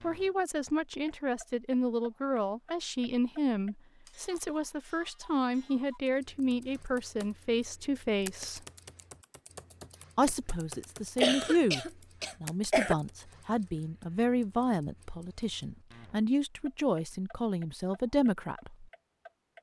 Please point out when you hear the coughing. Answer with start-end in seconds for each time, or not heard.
11.2-12.9.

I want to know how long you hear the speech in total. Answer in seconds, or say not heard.
17 s.